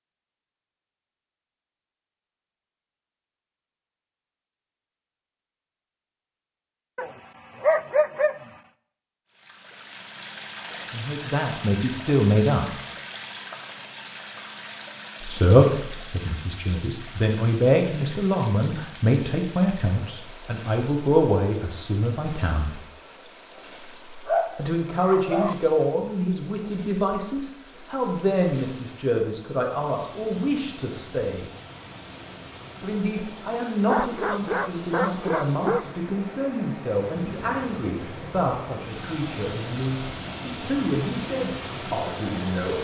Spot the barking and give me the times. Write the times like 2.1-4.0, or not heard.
7.0-8.5, 24.2-25.6, 33.9-35.9.